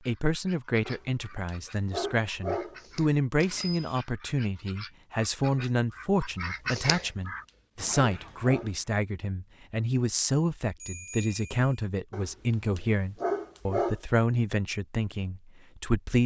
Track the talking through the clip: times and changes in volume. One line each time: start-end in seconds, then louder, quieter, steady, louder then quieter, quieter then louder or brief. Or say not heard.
0.1-16.2 steady.